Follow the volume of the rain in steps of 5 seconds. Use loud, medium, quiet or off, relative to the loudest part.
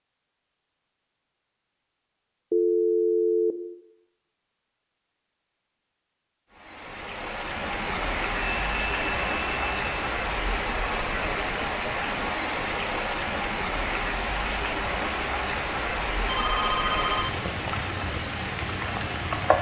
off, loud, loud, loud.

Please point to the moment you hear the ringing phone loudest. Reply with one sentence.
The volume of the ringing phone peaks at 3 seconds.